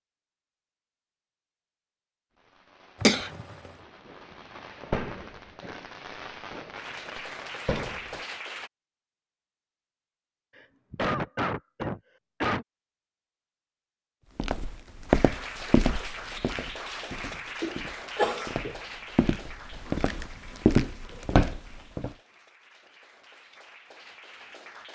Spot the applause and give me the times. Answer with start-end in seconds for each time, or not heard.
6.8-8.7, 15.1-24.9.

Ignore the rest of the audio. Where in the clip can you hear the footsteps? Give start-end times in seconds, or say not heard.
14.3-22.1.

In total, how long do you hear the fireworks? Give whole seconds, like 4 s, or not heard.
6 s.